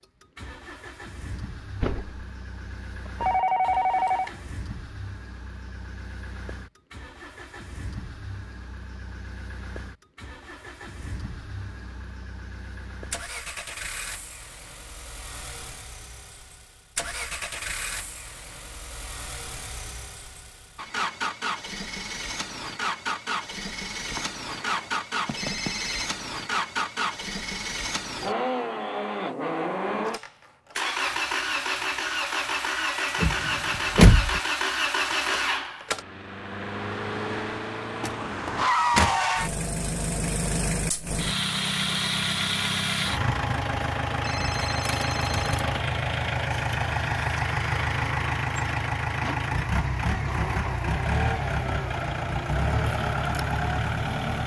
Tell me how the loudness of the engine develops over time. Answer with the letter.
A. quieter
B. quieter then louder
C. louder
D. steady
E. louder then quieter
C.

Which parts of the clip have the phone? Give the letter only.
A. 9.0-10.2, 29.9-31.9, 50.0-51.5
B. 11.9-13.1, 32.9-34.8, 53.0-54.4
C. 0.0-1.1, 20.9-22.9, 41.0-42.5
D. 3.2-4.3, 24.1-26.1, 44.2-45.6
D.